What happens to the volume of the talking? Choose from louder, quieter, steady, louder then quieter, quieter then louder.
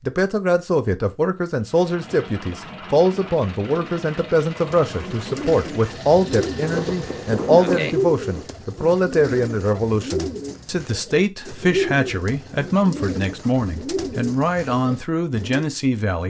steady.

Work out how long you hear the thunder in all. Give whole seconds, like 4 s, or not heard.
2 s.